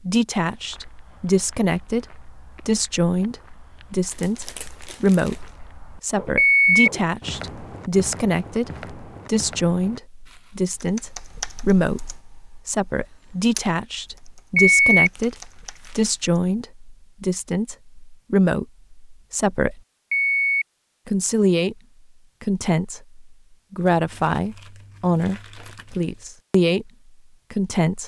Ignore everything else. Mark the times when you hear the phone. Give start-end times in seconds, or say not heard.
6.3-6.9, 14.6-15.1, 20.1-20.6.